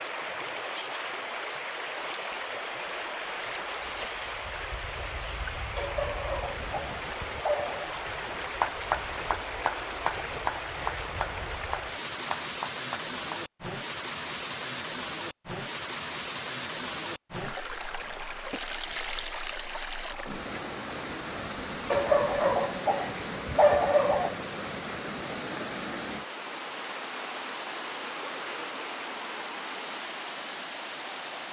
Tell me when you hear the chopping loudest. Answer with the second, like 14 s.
9 s.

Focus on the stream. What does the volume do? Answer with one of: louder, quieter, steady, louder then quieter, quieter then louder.
steady.